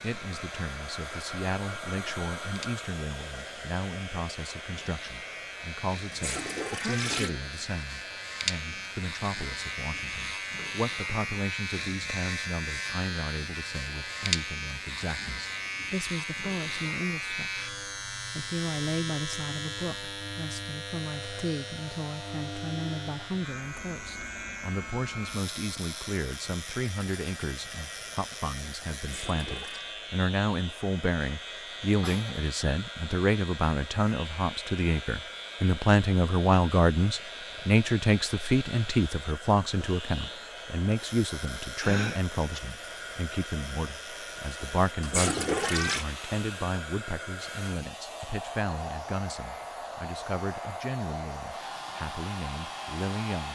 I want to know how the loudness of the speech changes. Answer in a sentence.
The volume of the speech goes up, then down.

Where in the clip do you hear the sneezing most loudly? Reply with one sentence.
The loudest moment of the sneezing is at 42 seconds.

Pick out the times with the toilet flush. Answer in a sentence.
You can hear the toilet flush from 6.1 to 7.3 s, from 29.0 to 29.9 s and from 45.0 to 46.0 s.